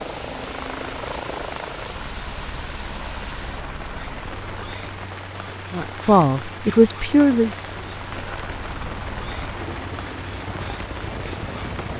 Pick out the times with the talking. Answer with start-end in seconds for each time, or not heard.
5.7-7.5.